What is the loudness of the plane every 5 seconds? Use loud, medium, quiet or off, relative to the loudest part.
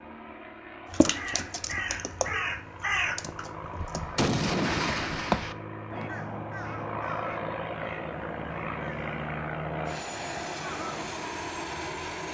medium, loud, loud.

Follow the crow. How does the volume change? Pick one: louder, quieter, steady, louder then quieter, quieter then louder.
quieter.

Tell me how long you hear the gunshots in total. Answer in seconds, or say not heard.
2 s.